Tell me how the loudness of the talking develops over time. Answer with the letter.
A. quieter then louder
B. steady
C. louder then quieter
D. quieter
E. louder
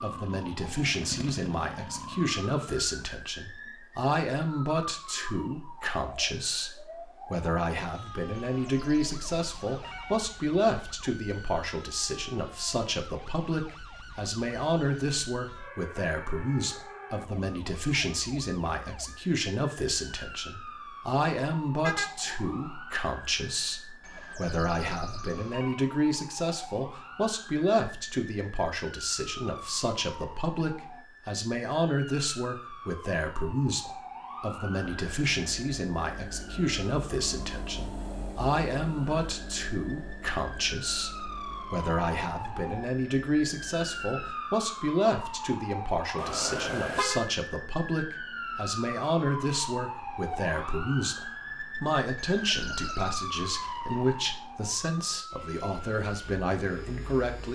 B.